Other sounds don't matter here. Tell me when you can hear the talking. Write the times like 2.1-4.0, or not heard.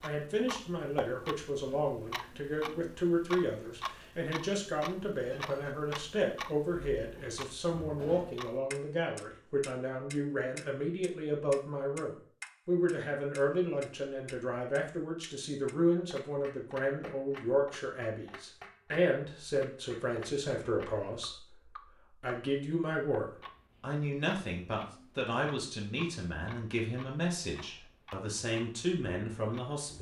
0.0-29.9.